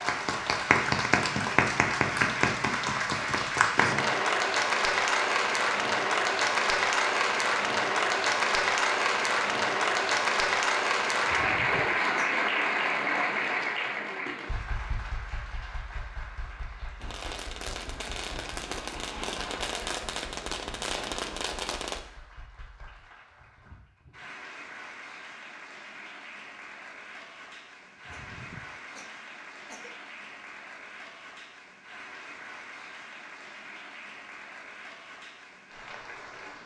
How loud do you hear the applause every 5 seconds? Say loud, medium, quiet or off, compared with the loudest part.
loud, loud, loud, quiet, quiet, quiet, quiet, quiet.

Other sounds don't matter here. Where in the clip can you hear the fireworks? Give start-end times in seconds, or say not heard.
17.0-22.0.